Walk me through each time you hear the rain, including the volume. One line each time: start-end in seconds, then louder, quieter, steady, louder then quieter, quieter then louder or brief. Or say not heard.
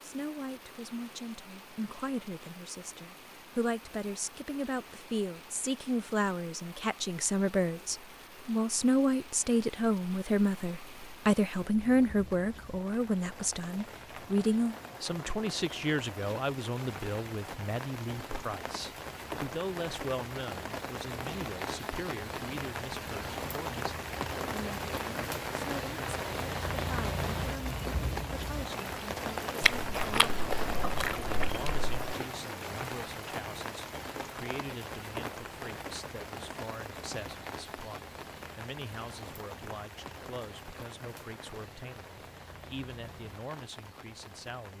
0.0-44.7 louder then quieter.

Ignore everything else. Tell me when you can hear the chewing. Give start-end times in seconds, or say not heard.
29.6-31.9.